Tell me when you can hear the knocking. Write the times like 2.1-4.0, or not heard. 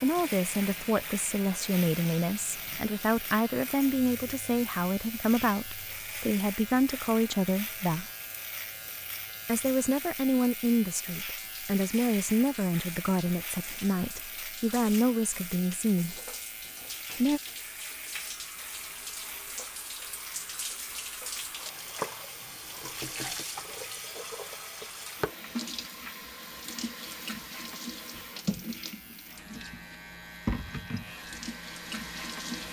22.4-23.4.